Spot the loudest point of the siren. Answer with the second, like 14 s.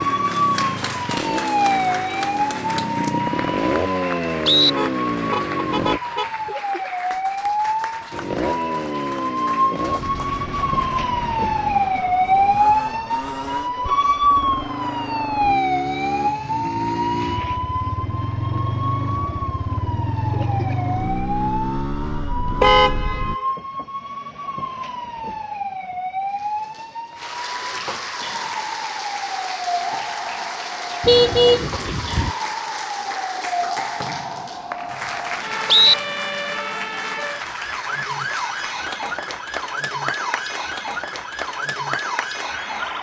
12 s.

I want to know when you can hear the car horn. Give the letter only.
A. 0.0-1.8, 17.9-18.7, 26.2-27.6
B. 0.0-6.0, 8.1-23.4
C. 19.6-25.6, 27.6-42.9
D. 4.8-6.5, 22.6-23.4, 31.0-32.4
D.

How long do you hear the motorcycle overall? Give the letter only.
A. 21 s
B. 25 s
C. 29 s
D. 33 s
A.